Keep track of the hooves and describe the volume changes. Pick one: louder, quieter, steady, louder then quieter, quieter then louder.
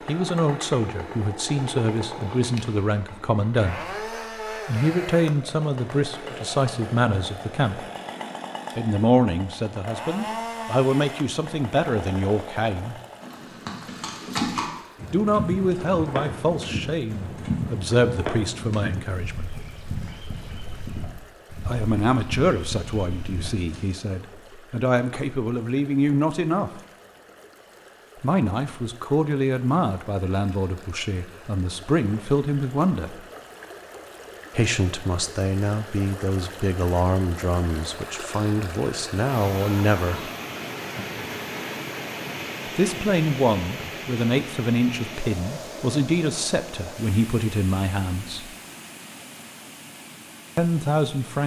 quieter.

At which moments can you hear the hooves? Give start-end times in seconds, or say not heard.
13.2-23.8.